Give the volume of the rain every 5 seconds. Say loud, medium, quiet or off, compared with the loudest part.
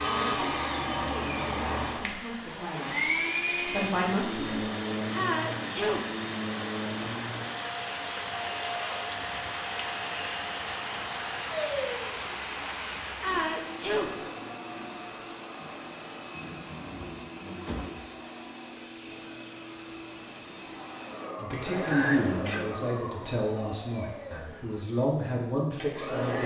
medium, loud, loud, off, off, off.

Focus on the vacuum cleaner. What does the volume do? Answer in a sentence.
The loudness of the vacuum cleaner goes down.